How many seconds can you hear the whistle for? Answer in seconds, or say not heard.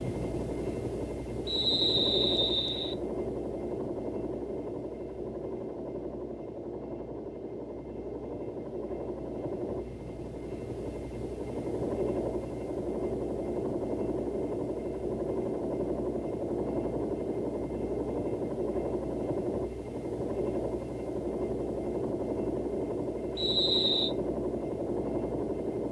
2 s.